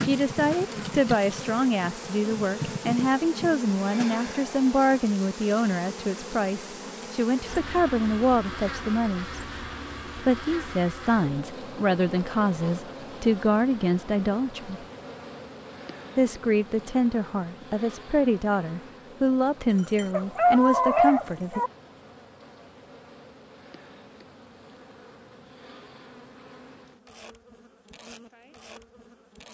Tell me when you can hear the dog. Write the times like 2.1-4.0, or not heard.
19.7-21.7.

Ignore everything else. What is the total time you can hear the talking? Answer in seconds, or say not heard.
19 s.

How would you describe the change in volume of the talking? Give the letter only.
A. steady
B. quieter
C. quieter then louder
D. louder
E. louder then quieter
A.